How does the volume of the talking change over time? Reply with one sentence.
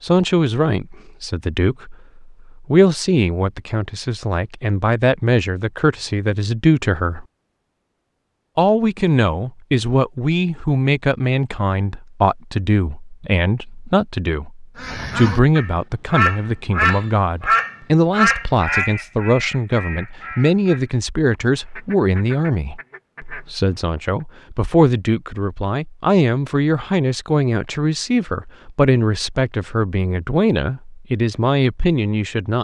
The volume of the talking stays about the same.